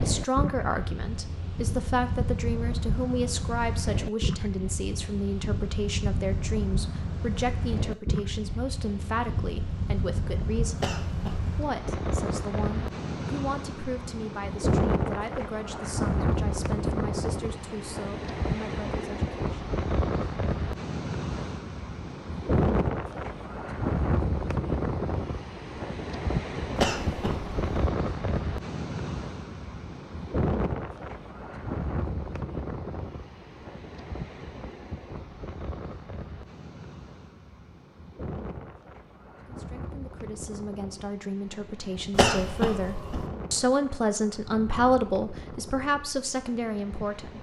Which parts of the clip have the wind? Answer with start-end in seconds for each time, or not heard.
0.0-47.3.